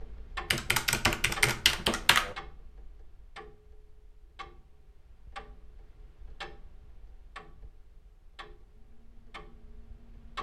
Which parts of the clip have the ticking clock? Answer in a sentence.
You can hear the ticking clock from 0.0 to 10.3 s.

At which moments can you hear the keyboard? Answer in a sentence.
You can hear the keyboard from 0.5 to 2.4 s.